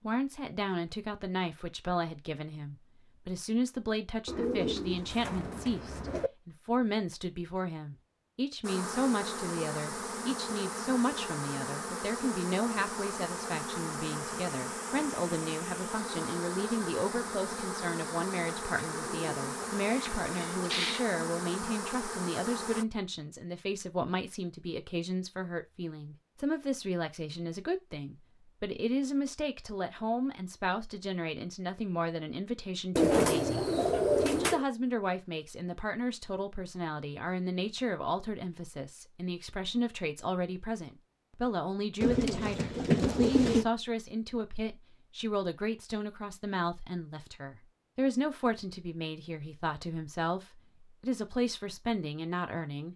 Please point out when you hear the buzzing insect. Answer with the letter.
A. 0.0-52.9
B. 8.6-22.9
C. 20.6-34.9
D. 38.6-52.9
B.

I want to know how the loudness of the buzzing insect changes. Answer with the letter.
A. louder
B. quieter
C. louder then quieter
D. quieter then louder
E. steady
E.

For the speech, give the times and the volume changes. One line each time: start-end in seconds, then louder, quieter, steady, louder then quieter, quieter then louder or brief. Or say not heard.
0.0-52.9 steady.